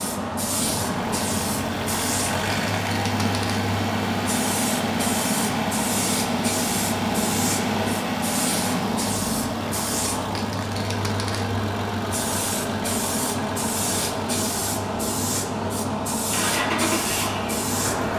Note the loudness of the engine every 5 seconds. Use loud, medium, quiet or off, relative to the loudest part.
loud, loud, medium, loud.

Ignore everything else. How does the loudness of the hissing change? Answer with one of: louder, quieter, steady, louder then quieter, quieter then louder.
steady.